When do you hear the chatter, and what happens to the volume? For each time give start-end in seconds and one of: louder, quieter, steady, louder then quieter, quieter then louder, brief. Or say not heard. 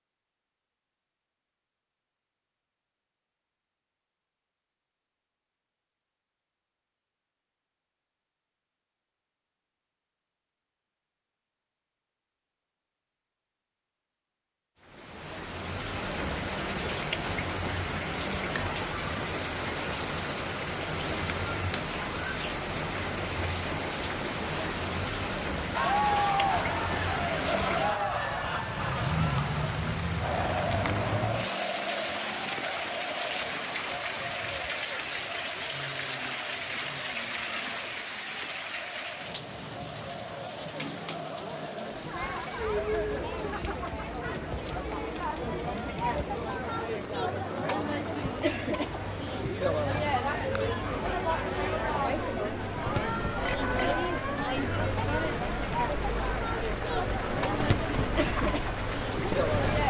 25.7-59.8 quieter then louder.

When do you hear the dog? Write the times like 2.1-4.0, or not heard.
not heard.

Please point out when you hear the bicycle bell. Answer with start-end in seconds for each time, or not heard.
53.5-54.1.